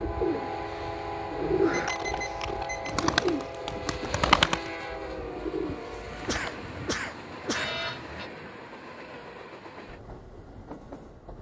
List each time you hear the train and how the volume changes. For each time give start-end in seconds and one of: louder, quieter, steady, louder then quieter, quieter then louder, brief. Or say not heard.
0.0-11.3 quieter.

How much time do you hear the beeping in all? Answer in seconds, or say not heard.
2 s.